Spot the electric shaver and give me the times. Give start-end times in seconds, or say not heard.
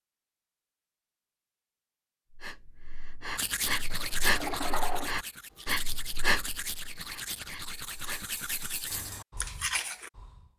not heard.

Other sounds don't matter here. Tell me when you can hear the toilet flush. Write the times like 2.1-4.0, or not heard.
3.9-5.1.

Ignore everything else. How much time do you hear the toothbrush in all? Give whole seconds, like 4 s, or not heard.
7 s.